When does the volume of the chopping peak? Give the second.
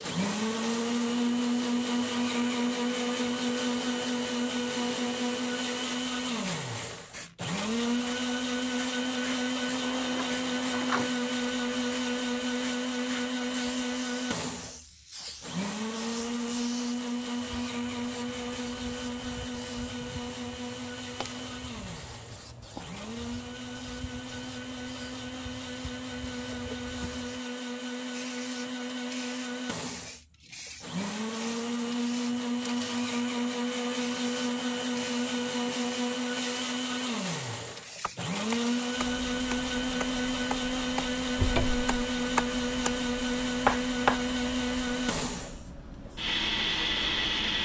44 s.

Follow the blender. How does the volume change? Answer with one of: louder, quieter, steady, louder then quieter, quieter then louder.
quieter then louder.